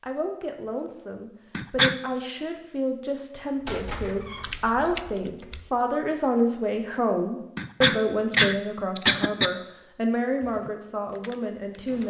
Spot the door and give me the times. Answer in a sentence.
You can hear the door from 3.6 to 4.5 s.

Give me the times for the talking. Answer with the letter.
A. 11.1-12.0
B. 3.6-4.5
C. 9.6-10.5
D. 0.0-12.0
D.